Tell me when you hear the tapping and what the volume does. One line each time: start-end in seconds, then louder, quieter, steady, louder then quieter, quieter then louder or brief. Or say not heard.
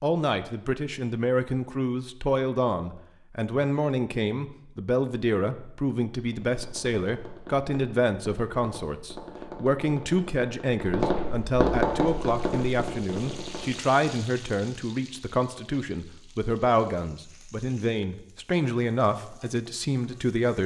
6.2-14.0 louder then quieter.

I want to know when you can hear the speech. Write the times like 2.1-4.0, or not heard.
0.0-20.6.